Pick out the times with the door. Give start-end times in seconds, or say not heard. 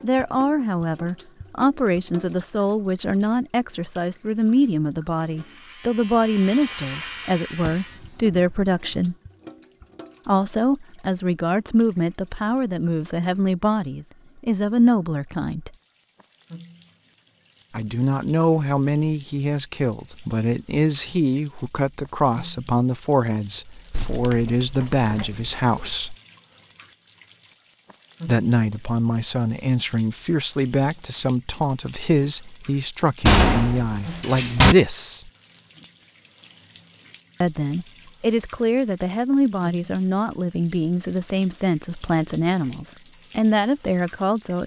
7.6-9.0, 23.9-25.4, 33.2-34.8.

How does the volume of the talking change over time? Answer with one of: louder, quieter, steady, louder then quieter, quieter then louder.
steady.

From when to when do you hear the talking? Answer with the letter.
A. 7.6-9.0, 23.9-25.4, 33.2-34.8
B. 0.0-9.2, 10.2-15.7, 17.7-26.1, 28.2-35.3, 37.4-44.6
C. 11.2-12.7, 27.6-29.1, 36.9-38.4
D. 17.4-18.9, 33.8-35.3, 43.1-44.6
B.